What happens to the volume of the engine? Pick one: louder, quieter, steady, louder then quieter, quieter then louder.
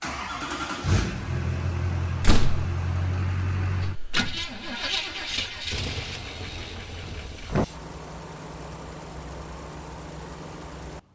quieter.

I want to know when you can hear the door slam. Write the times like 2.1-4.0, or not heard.
2.2-2.6, 6.5-7.7.